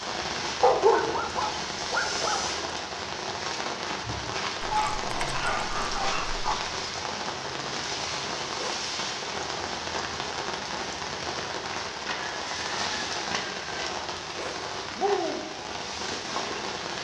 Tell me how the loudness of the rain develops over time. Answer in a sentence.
The loudness of the rain stays about the same.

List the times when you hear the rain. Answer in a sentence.
The rain can be heard from 0.0 to 16.9 s.